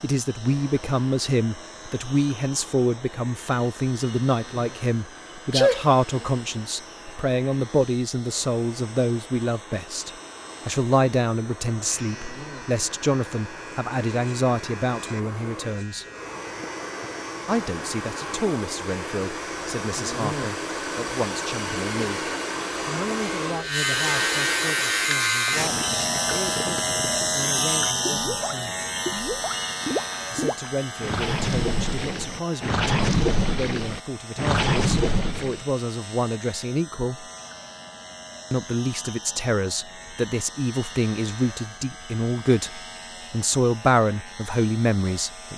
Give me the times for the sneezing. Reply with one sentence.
You can hear the sneezing from 5.5 to 6.2 s.